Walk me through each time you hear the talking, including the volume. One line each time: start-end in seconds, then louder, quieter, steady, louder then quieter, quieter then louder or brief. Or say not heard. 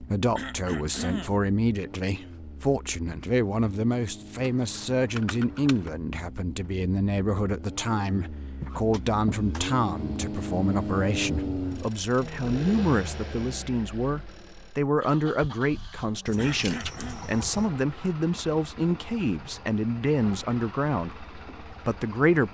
0.0-22.4 steady.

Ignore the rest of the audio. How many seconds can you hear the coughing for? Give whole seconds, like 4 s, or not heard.
2 s.